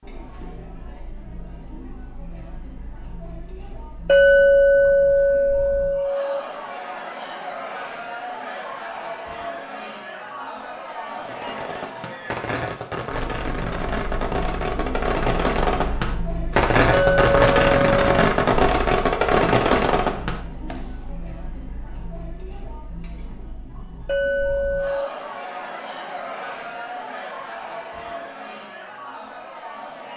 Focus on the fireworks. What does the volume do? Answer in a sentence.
The volume of the fireworks goes up.